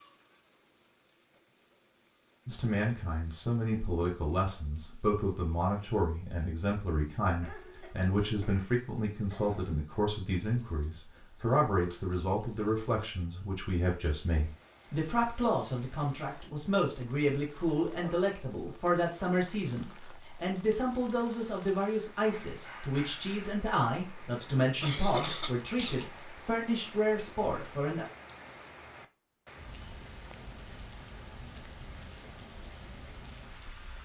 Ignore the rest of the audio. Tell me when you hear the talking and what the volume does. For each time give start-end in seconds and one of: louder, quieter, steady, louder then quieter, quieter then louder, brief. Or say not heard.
2.5-28.1 steady.